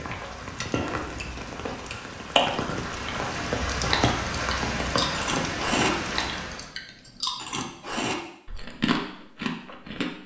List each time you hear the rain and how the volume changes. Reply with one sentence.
You can hear the rain from 0.0 to 6.7 s, getting louder.